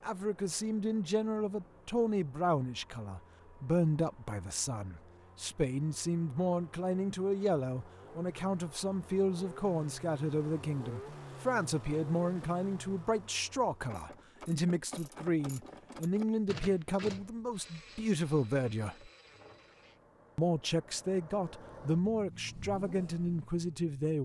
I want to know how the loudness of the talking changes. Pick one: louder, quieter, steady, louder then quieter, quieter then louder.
steady.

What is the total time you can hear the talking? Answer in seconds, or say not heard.
23 s.